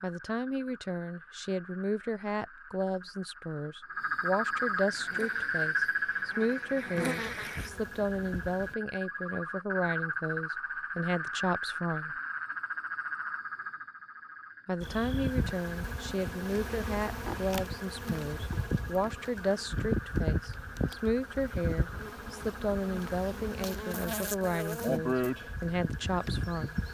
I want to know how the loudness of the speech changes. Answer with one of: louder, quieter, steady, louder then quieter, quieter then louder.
steady.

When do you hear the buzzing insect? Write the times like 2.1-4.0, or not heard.
4.9-8.8, 14.8-26.8.